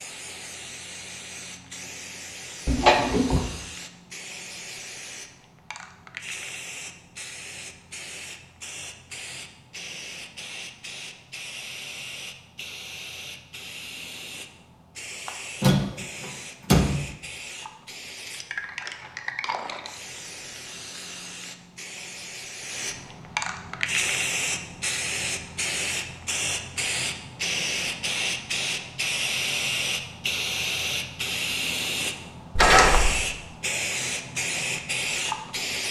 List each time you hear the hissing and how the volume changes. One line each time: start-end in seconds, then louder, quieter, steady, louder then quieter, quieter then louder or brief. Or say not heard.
0.0-35.8 louder.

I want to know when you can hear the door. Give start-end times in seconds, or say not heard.
2.6-3.4, 15.6-17.1, 32.5-33.2.